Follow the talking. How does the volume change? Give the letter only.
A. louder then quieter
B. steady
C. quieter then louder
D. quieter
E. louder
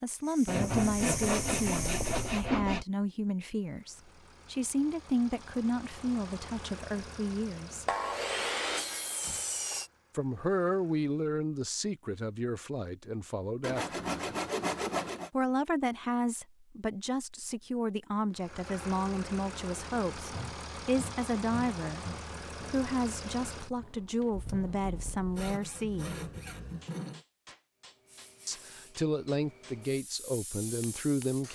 B.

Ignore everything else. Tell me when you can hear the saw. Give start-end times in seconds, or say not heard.
0.5-2.9, 7.8-9.9, 13.6-15.3, 20.3-22.9, 25.4-27.2.